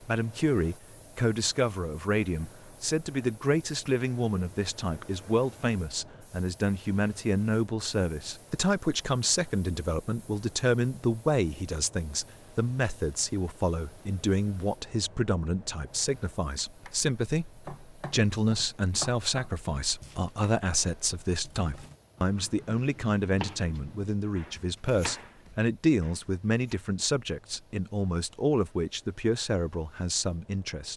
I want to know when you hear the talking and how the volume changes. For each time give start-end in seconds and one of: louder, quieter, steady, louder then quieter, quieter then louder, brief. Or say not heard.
0.1-30.9 steady.